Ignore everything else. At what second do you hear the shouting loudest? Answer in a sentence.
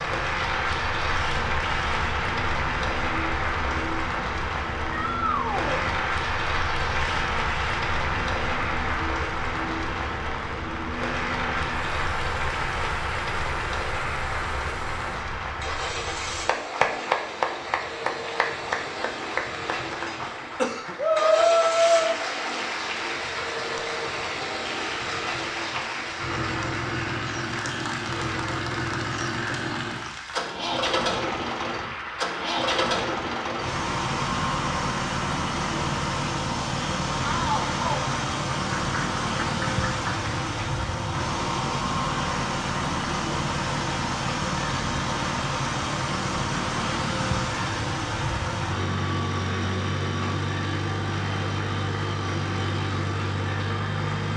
The volume of the shouting peaks at 21 seconds.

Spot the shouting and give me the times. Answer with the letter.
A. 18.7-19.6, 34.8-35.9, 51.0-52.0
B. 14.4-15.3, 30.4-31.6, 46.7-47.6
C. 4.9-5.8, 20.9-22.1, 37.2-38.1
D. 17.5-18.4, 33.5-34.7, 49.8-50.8
C.